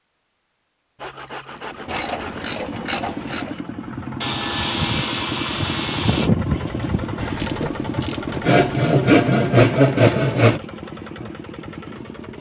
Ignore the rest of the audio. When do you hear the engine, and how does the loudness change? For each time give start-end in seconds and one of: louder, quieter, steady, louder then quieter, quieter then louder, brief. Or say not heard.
1.4-12.3 louder then quieter.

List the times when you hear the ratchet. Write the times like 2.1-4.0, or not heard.
1.9-3.6, 7.2-8.6.